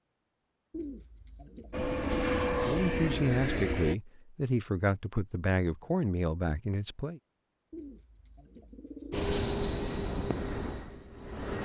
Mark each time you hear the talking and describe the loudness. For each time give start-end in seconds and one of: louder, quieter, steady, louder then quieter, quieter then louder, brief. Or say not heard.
2.6-7.2 steady.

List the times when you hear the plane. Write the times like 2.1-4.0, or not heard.
1.7-4.0, 9.1-11.6.